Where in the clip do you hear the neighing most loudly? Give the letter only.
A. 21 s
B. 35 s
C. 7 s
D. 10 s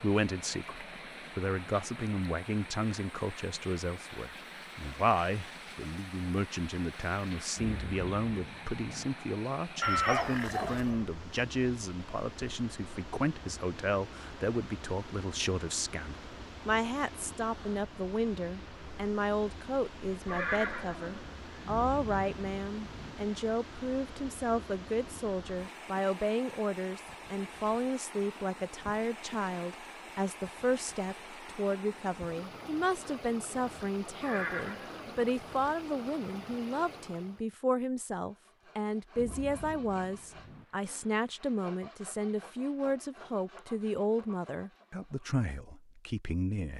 D.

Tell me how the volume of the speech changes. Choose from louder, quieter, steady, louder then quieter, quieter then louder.
steady.